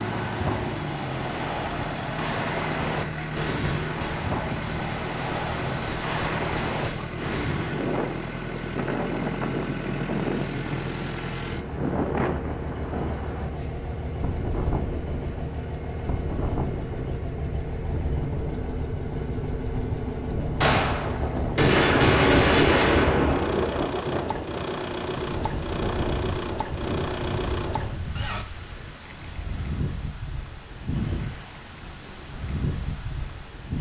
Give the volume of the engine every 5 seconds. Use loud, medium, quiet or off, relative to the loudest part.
loud, loud, loud, loud, loud, loud, off.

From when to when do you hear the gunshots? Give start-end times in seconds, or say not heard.
3.1-7.1, 20.6-23.8.